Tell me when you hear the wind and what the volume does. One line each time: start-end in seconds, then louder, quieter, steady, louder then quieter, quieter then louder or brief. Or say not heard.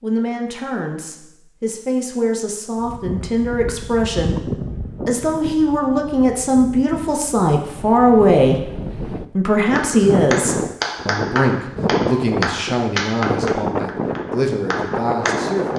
2.8-15.7 quieter then louder.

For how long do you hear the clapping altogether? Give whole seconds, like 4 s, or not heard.
6 s.